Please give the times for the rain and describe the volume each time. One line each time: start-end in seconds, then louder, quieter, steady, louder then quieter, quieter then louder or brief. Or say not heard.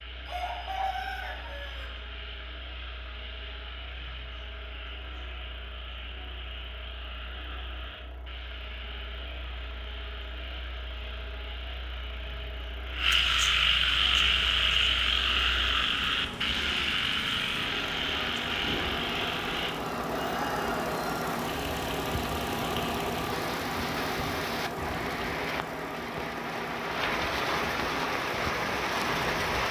13.9-29.6 louder.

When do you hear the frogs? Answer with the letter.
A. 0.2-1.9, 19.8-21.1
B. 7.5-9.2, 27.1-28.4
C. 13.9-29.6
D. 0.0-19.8
D.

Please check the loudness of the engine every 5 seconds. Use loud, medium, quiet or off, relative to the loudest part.
quiet, quiet, quiet, medium, loud, medium.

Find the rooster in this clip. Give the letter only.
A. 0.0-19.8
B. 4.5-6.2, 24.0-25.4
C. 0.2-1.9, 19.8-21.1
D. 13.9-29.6
C.